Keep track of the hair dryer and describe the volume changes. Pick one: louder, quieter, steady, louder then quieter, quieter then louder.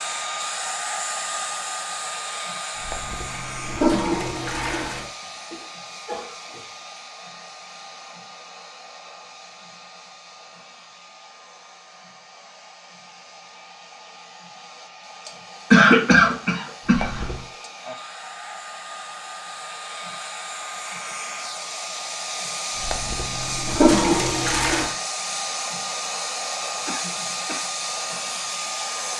quieter then louder.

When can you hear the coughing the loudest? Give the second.
16 s.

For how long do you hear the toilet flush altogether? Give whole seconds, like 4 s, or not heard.
5 s.